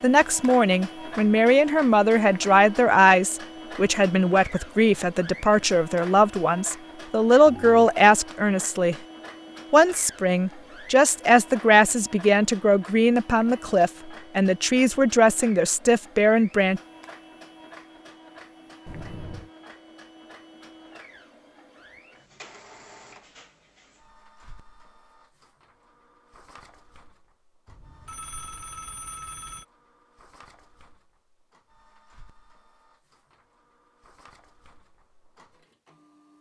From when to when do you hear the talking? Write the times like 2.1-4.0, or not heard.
0.0-8.9, 9.7-16.8.